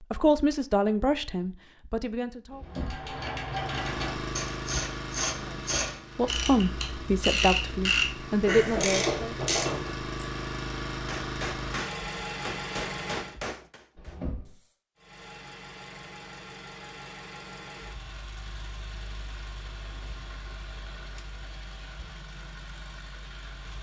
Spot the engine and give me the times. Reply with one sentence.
The engine can be heard from 3.5 to 13.4 s and from 14.9 to 23.7 s.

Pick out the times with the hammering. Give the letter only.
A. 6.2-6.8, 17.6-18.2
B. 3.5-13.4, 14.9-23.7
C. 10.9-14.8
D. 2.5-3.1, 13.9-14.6
C.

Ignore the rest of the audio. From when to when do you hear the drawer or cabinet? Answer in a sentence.
You can hear the drawer or cabinet from 2.5 to 3.1 s and from 13.9 to 14.6 s.